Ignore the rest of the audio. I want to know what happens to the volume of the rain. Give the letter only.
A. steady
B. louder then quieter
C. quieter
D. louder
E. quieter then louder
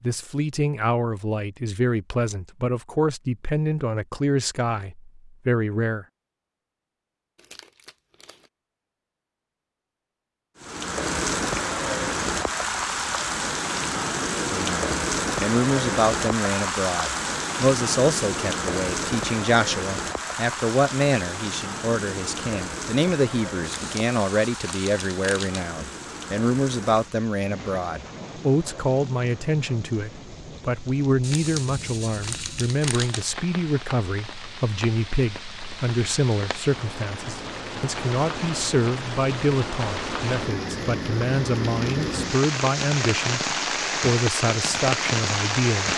E.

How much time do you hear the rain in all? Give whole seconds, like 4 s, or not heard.
35 s.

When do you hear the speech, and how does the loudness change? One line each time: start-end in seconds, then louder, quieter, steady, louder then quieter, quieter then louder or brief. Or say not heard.
0.0-6.0 steady
14.3-45.9 steady.